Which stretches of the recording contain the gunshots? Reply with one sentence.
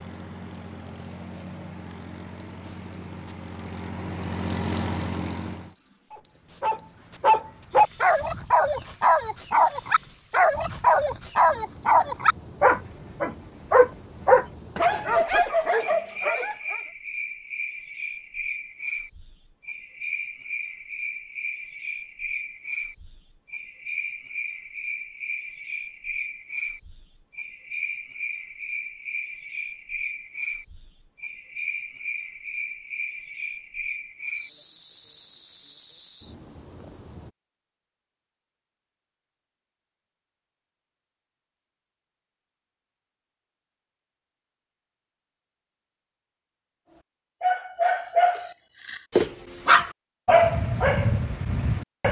The gunshots can't be heard in this clip.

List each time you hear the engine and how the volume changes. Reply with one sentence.
The engine can be heard from 0.0 to 5.8 s, getting louder.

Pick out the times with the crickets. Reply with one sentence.
The crickets can be heard from 0.0 to 37.4 s.